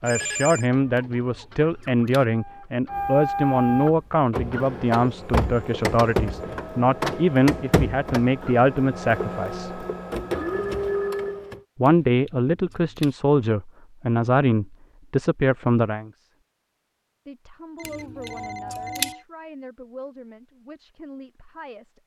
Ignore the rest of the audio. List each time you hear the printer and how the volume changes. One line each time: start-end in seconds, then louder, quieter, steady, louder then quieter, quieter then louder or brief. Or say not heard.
0.0-11.6 louder.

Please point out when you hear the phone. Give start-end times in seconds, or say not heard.
0.0-0.7, 10.3-11.4, 17.8-19.2.